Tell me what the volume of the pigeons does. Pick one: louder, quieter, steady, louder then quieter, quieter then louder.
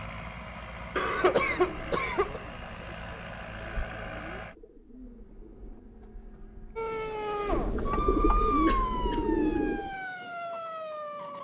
louder.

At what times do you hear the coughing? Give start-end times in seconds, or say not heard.
0.9-2.4, 8.7-9.6.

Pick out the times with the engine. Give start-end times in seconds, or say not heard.
0.0-4.5.